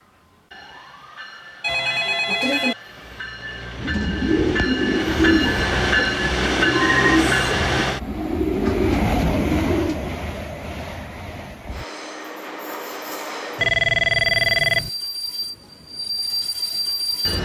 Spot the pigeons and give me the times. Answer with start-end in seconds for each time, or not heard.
3.8-10.2.